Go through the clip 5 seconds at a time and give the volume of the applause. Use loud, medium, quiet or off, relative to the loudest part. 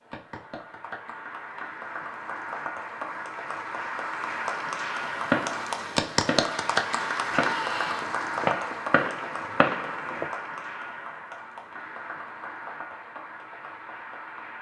medium, loud, medium.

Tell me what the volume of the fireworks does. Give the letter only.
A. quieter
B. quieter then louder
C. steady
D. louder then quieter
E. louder
E.